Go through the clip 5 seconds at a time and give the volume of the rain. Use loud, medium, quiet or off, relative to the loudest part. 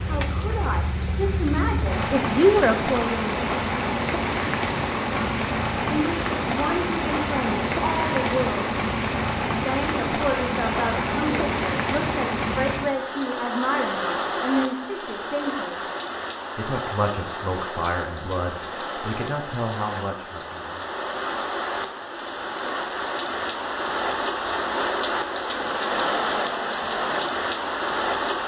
loud, loud, loud, medium, loud, loud.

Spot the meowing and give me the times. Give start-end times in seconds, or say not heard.
not heard.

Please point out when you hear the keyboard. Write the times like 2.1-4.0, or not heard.
not heard.